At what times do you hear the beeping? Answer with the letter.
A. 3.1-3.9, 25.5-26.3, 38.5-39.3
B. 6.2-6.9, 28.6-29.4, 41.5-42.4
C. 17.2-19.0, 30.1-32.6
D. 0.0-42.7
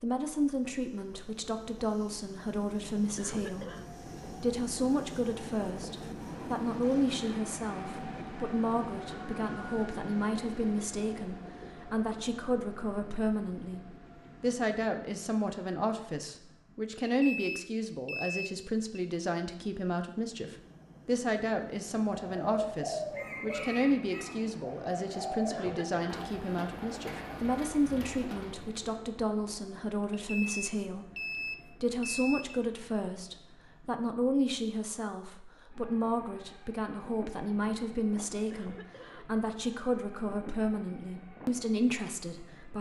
C.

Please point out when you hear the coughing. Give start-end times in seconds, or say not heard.
3.1-3.9, 25.5-26.3, 38.5-39.3.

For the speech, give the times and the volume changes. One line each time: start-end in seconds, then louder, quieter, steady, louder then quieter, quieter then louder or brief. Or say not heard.
0.0-42.7 steady.